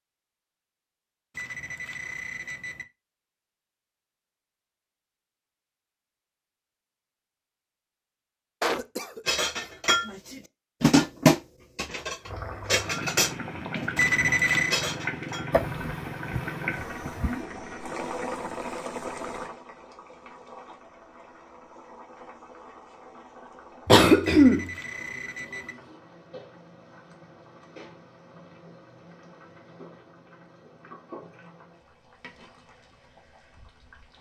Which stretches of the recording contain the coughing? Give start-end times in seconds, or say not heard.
8.6-9.7, 15.5-17.4, 23.9-24.7.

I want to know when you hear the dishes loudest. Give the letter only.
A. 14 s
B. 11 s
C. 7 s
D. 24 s
B.